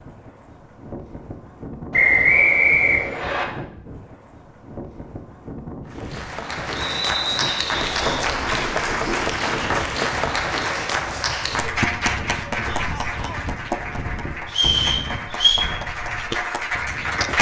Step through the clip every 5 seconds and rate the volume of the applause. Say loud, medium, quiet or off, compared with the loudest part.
off, loud, loud, loud.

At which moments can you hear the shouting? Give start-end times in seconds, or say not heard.
12.7-13.4.